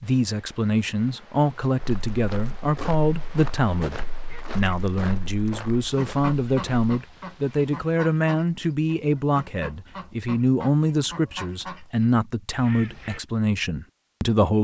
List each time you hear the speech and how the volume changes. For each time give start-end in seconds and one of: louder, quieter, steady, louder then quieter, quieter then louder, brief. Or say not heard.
0.0-14.5 steady.